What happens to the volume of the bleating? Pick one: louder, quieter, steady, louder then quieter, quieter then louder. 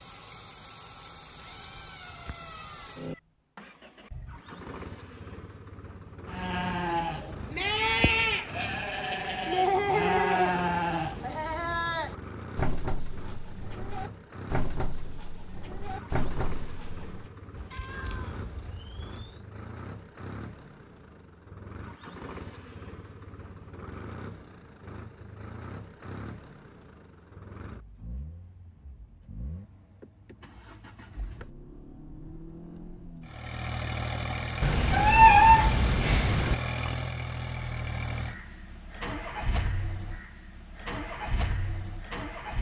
quieter.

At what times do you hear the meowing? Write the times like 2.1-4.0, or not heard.
1.4-3.2, 17.6-19.4, 34.6-36.5.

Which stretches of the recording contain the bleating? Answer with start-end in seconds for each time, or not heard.
6.3-17.2.